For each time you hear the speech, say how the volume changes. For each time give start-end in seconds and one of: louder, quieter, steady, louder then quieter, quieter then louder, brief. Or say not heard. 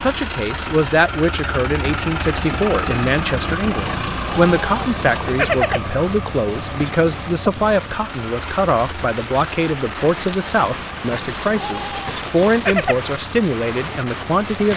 0.0-14.7 steady.